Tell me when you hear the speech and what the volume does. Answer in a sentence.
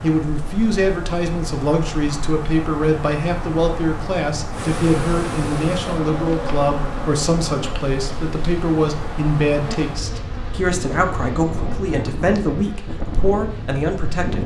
The speech can be heard from 0.0 to 14.4 s, at a steady volume.